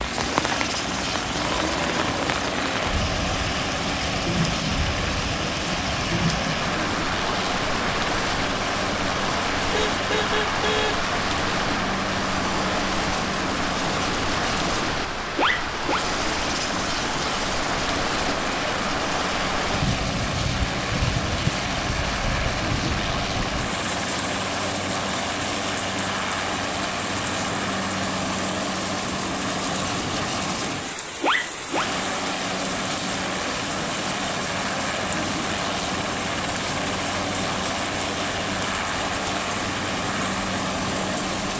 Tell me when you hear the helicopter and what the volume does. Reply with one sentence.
You can hear the helicopter from 0.0 to 41.5 s, at a steady volume.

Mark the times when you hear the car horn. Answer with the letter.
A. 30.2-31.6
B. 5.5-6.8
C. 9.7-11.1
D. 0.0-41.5
C.